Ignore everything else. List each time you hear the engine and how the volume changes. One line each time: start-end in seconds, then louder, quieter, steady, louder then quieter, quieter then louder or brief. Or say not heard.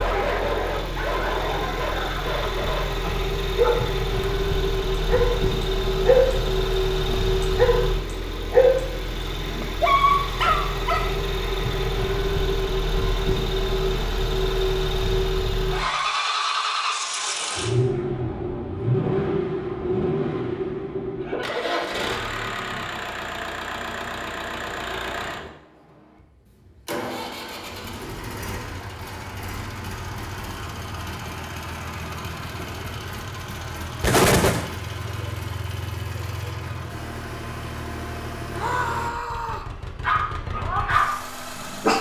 0.0-41.9 quieter.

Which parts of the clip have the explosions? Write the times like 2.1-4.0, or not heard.
34.0-34.7.